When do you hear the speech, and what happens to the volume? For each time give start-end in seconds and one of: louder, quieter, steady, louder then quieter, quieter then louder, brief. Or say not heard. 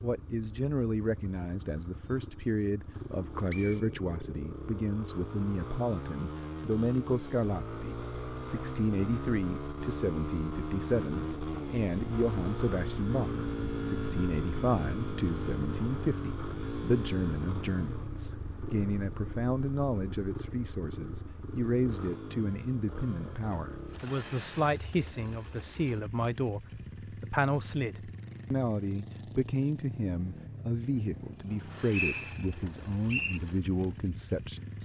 0.0-34.8 steady.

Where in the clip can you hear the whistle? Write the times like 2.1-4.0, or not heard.
3.5-4.2, 31.5-33.4.